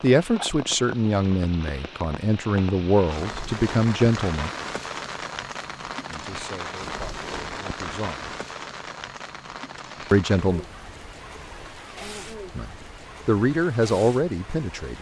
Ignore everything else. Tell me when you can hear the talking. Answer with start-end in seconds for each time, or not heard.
0.0-4.5, 6.0-8.3, 10.1-10.7, 12.6-14.9.